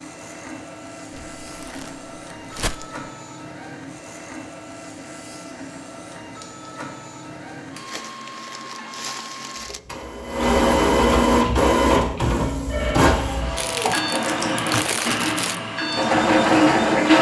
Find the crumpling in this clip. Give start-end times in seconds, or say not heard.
1.1-3.0, 7.8-9.8, 13.6-15.6.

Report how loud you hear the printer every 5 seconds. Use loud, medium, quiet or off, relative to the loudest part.
quiet, quiet, loud, loud.